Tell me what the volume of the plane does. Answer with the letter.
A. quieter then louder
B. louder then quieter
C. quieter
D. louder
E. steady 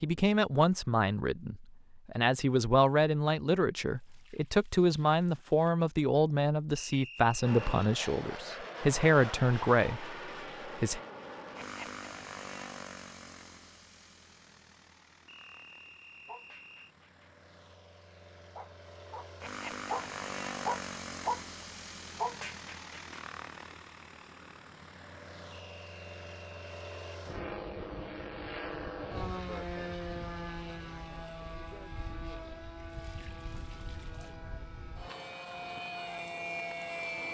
A.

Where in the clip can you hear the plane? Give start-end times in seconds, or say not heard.
7.4-37.2.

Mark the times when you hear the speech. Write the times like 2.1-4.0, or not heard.
0.0-11.0.